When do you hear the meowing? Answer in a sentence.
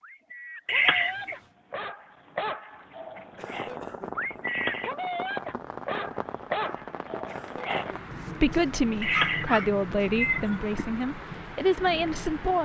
The meowing can be heard from 0.7 to 1.4 s, from 4.5 to 4.9 s and from 9.0 to 10.7 s.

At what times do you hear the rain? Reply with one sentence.
The rain can be heard from 3.2 to 12.6 s.